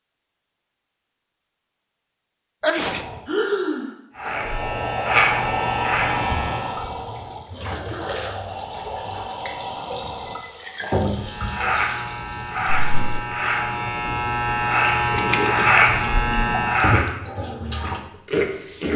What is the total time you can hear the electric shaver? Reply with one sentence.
The electric shaver can be heard for 9 seconds in total.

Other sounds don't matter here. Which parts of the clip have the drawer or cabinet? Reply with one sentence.
You can't hear the drawer or cabinet here.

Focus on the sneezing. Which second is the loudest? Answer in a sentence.
The volume of the sneezing peaks at 3 seconds.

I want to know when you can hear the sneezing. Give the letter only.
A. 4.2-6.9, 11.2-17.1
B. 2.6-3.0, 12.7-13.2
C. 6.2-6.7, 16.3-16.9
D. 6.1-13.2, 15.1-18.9
B.